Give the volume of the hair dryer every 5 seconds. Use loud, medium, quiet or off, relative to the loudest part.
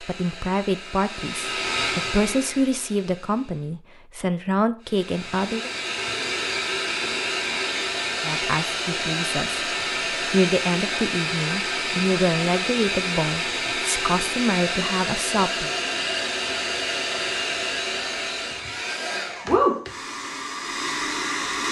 medium, loud, loud, loud, loud.